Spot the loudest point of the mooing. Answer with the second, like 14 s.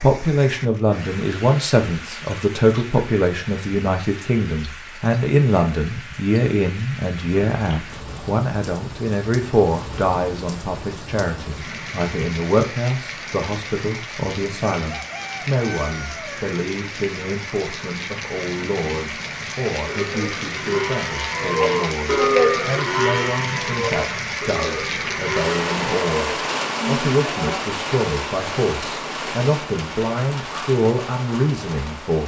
22 s.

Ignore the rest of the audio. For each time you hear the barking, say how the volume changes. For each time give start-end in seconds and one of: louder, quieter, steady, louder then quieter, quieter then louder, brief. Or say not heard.
not heard.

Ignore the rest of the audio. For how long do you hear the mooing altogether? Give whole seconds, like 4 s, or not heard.
8 s.